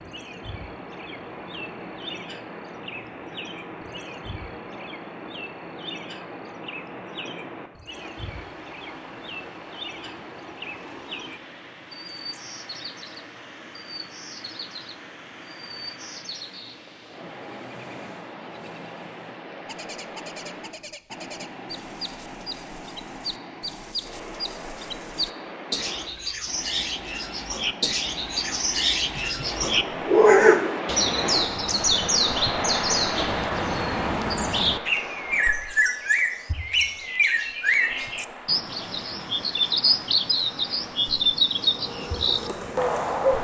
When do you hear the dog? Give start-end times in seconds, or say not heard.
29.1-30.8.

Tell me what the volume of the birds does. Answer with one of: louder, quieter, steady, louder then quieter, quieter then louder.
louder.